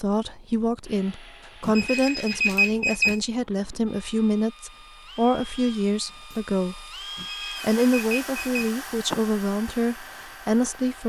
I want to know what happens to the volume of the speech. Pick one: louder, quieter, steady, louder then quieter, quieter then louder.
steady.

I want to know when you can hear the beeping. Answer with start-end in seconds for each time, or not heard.
1.6-3.2, 7.2-9.2.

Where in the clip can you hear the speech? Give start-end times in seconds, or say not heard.
0.0-6.8, 7.6-11.0.